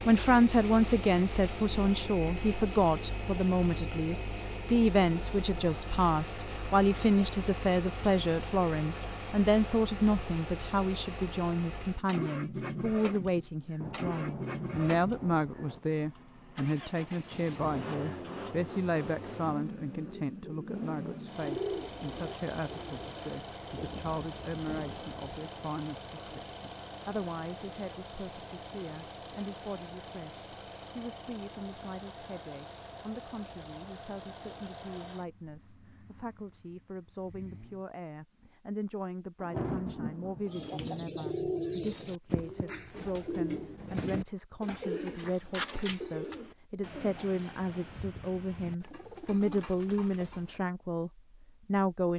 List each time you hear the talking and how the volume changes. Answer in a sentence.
The talking can be heard from 0.0 to 52.1 s, getting quieter then louder.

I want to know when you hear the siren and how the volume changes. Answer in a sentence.
You can't hear the siren here.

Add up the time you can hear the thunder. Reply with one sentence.
The thunder can be heard for 5 seconds in total.